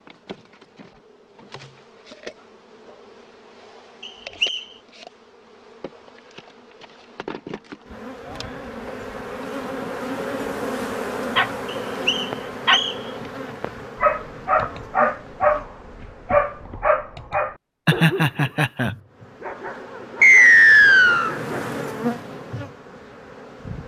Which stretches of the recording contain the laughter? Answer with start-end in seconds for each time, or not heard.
17.9-18.9.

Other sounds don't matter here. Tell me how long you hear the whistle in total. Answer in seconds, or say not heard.
3 s.